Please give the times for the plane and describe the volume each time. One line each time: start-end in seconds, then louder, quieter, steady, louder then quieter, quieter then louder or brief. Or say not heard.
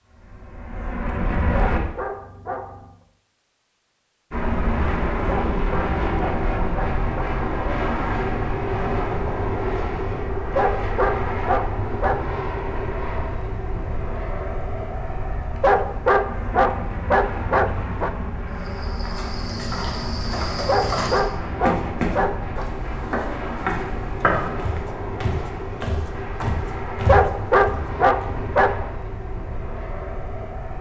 0.0-1.8 brief
4.3-30.7 quieter.